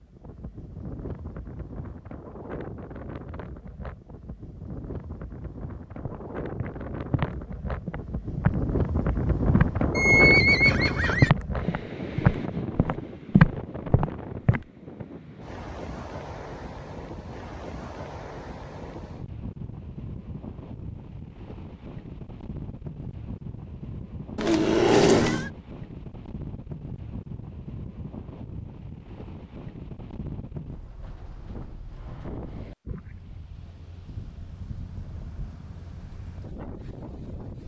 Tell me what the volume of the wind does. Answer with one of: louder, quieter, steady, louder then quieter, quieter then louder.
louder then quieter.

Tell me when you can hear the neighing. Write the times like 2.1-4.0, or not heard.
9.9-11.3, 24.4-25.5.